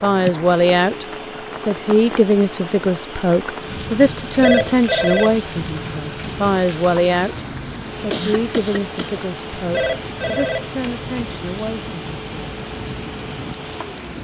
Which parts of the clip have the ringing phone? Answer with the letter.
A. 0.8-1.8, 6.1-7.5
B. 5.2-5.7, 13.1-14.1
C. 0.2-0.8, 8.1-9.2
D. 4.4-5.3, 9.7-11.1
D.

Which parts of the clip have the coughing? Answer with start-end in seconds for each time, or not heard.
0.2-0.8, 8.1-9.2.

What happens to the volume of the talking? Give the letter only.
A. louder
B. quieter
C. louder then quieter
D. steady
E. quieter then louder
B.